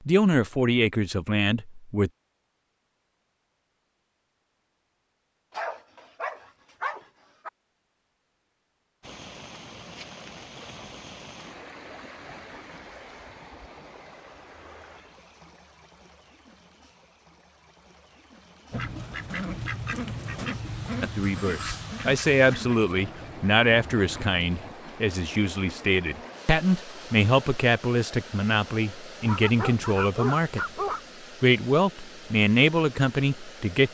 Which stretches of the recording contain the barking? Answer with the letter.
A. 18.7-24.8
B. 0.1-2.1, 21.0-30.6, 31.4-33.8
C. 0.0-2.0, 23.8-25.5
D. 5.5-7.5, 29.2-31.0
D.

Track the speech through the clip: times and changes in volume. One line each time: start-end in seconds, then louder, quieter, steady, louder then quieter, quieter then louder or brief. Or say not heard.
0.1-2.1 brief
21.0-30.6 steady
31.4-33.8 brief.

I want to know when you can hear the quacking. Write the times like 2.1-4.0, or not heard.
18.7-24.8.